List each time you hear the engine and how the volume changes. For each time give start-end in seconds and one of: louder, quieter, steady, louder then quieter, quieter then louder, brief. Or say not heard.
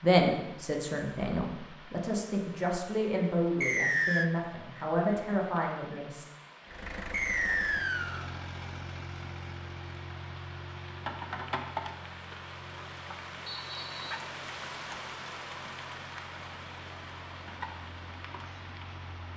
6.7-19.3 quieter.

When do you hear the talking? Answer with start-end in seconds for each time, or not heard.
0.0-6.2.